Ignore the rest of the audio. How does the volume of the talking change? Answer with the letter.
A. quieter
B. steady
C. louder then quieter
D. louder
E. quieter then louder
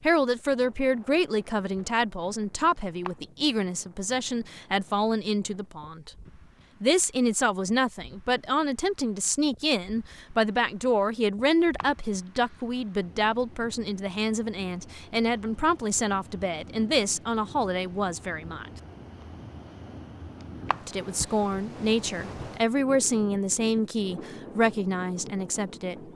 B.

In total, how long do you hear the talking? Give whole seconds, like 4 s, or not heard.
23 s.